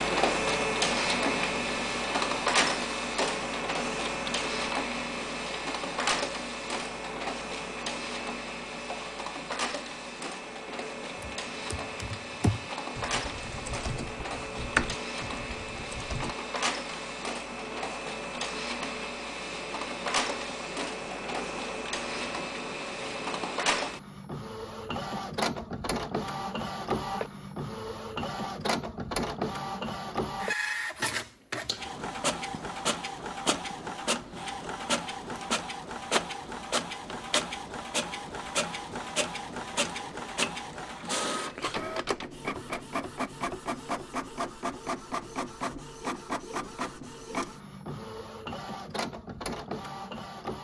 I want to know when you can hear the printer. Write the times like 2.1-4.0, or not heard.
0.0-50.5.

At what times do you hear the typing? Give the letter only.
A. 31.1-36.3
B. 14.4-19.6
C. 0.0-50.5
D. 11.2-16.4
D.